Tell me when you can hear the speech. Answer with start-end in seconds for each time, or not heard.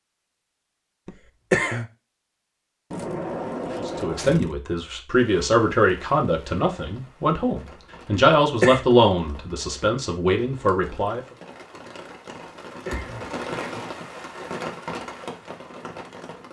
3.8-11.2.